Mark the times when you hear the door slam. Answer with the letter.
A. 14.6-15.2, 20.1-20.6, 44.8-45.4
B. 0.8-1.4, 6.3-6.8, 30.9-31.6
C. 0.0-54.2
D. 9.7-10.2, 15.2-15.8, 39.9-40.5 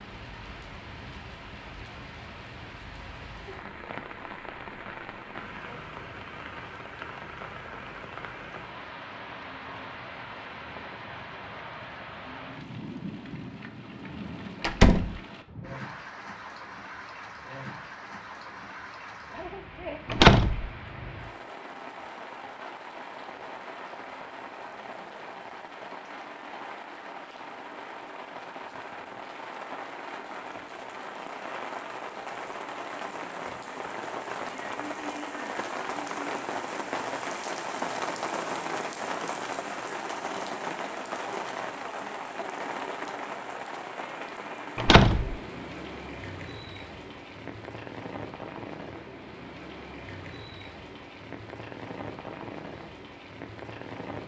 A.